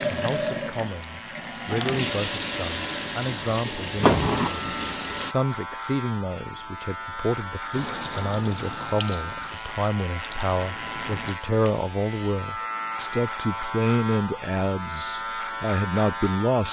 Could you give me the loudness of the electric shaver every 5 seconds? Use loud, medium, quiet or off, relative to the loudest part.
medium, loud, loud, loud.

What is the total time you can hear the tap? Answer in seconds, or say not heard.
9 s.